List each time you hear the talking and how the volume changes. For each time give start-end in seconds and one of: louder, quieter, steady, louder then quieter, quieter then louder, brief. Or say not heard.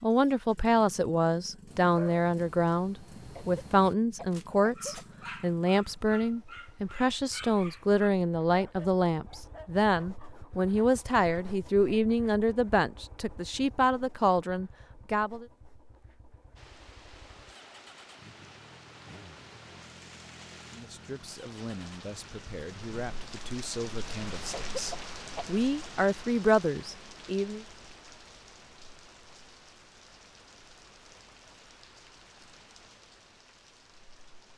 0.0-15.4 steady
20.7-27.6 louder.